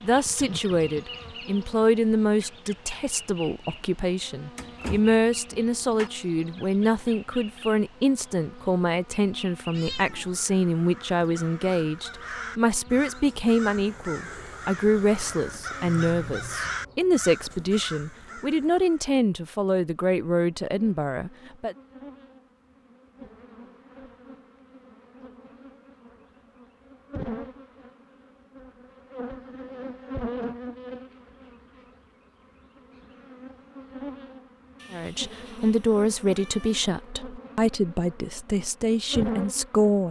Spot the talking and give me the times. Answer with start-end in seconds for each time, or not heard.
0.0-21.8, 34.9-40.0.